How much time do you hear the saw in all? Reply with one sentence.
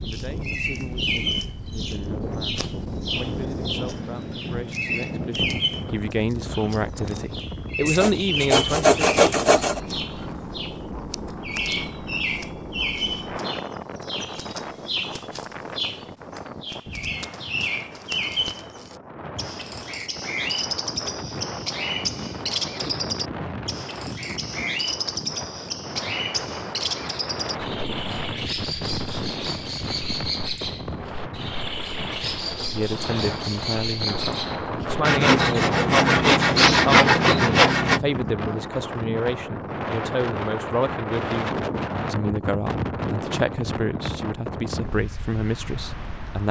The saw can be heard for 5 seconds in total.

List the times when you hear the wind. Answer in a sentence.
The wind can be heard from 0.0 to 46.4 s.